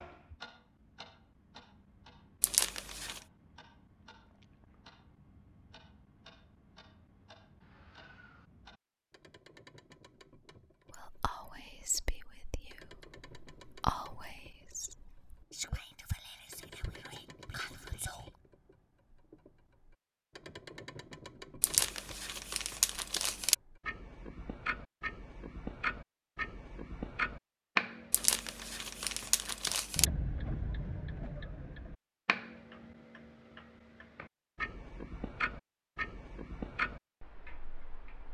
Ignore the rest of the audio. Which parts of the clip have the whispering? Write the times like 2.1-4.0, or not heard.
10.9-18.3.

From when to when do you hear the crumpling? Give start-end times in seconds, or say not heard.
2.4-3.2, 21.6-23.6, 28.1-30.1.